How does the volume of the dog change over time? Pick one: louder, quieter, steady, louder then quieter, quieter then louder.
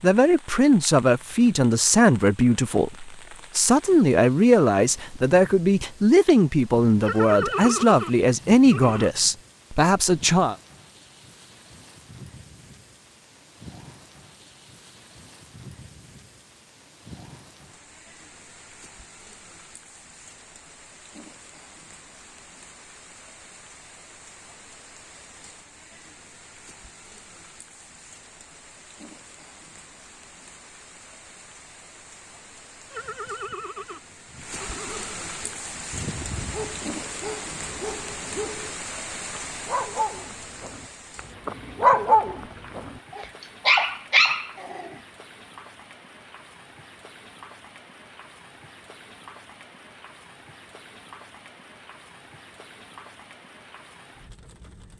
louder.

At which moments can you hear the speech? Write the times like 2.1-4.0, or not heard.
0.0-10.6.